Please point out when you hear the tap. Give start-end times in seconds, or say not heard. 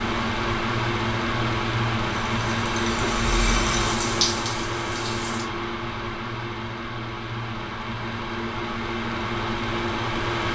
2.2-5.5.